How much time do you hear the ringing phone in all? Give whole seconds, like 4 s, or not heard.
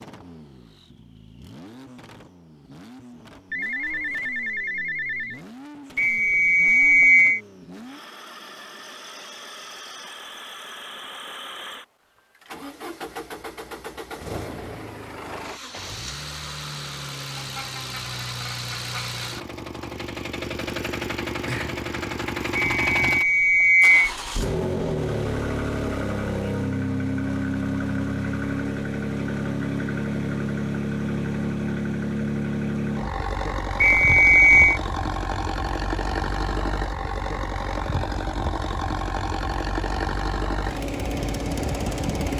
2 s.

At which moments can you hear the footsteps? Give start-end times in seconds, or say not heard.
not heard.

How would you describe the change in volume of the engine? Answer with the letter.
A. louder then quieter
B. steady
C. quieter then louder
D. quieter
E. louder
E.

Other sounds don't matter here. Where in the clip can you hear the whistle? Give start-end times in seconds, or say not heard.
6.0-7.4, 22.6-24.1, 33.8-34.8.